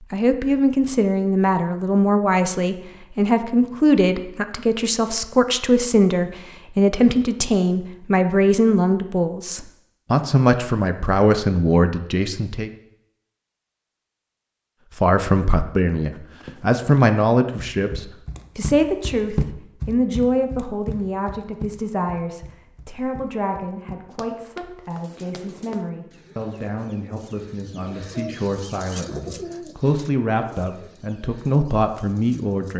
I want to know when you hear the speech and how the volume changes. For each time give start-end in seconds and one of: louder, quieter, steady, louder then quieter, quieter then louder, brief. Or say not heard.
0.0-12.7 steady
14.9-32.7 quieter then louder.